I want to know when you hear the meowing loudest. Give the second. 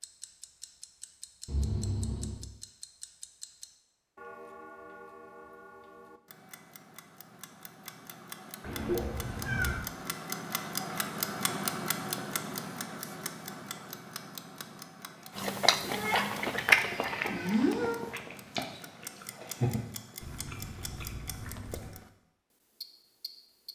18 s.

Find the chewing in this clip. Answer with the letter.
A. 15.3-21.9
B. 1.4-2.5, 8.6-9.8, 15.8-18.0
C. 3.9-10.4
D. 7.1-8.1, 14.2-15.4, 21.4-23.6
A.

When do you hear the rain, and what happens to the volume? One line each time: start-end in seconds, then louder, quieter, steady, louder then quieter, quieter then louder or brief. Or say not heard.
not heard.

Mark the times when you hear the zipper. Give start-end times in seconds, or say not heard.
not heard.